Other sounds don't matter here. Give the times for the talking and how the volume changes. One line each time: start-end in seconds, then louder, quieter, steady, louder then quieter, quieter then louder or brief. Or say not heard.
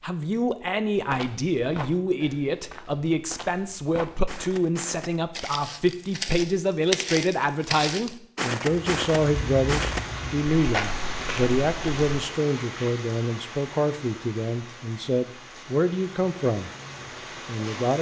0.0-16.7 steady
17.4-17.9 brief.